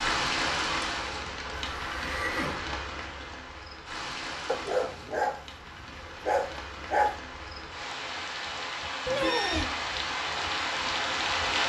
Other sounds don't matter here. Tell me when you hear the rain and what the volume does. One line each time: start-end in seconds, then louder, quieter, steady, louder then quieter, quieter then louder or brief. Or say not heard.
0.0-11.6 quieter then louder.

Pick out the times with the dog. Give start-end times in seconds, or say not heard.
4.5-7.2.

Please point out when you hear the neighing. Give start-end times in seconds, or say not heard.
1.8-2.6, 9.1-9.7.